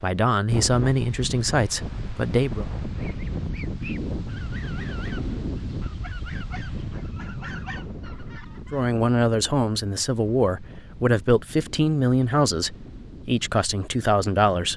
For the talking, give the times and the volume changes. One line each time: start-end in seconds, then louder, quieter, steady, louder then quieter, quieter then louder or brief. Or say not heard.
0.0-2.6 brief
8.7-14.7 steady.